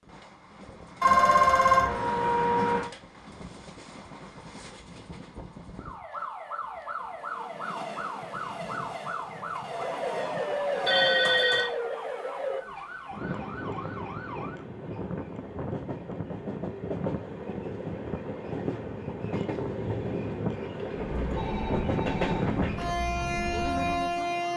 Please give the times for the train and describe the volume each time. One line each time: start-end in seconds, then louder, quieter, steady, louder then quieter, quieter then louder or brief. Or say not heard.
0.0-24.5 louder.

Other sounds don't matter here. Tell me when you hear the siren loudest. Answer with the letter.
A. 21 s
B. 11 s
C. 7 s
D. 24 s
B.